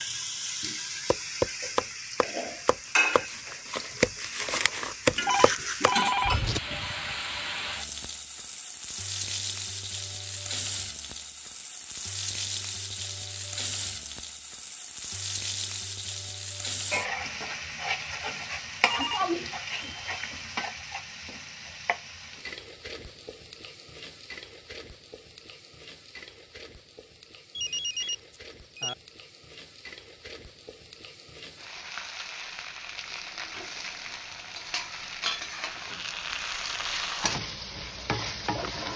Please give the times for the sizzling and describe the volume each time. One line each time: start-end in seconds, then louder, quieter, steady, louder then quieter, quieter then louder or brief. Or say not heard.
0.0-38.9 quieter then louder.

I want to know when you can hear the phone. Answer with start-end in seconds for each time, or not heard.
5.2-7.2, 18.8-19.9, 27.6-28.9.